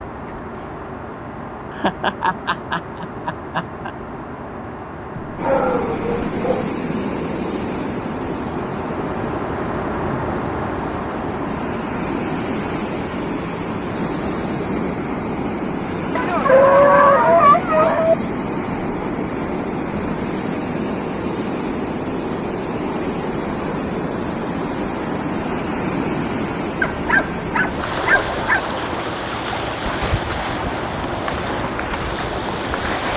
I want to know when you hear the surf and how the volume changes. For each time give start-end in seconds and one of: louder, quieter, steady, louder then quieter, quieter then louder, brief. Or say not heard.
5.3-33.1 steady.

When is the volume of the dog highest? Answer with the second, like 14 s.
17 s.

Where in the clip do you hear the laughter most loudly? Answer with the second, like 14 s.
2 s.